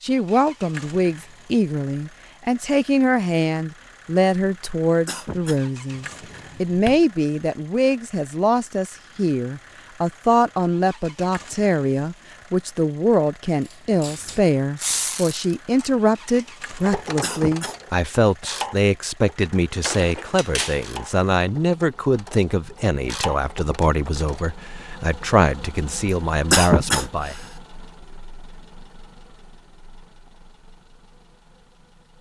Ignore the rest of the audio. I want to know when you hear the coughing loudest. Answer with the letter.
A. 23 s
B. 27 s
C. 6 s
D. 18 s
B.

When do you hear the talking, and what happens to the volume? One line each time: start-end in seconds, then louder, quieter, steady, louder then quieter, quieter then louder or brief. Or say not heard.
0.0-27.4 steady.